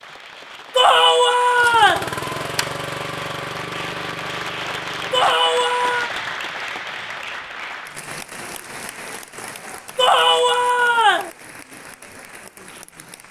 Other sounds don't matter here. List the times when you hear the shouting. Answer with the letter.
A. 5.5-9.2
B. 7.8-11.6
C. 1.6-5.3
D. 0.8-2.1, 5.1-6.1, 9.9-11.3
D.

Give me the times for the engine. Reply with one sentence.
You can hear the engine from 1.6 to 5.3 s.